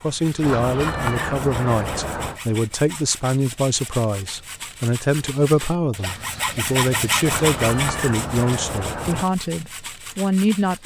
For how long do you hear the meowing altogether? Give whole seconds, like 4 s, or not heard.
4 s.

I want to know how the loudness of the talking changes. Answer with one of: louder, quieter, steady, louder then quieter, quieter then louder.
steady.